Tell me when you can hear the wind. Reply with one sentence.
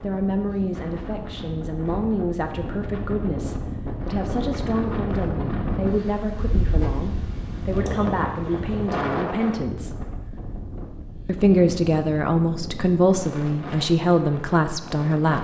You can hear the wind from 0.0 to 15.4 s.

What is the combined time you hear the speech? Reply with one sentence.
The speech can be heard for 14 seconds in total.